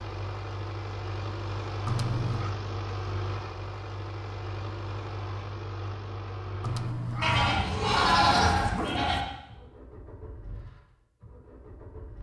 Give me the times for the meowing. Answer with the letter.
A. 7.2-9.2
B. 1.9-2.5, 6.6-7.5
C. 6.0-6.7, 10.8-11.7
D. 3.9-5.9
B.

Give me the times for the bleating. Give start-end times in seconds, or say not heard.
7.2-9.2.